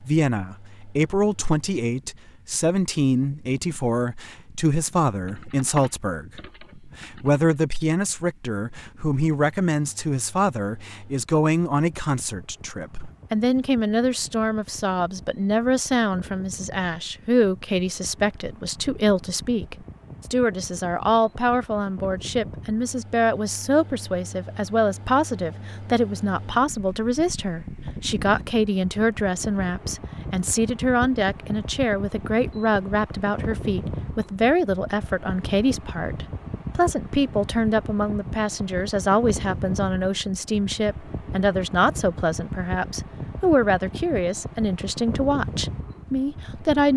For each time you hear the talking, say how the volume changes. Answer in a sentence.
You can hear the talking from 0.0 to 46.9 s, at a steady volume.